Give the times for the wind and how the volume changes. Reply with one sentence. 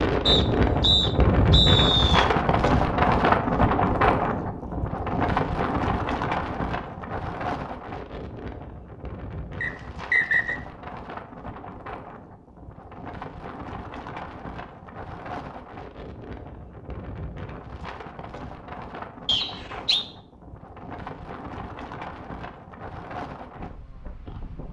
You can hear the wind from 0.0 to 24.6 s, getting quieter.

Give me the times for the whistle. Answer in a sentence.
The whistle can be heard from 0.2 to 2.2 s, from 9.6 to 10.6 s and from 19.2 to 20.1 s.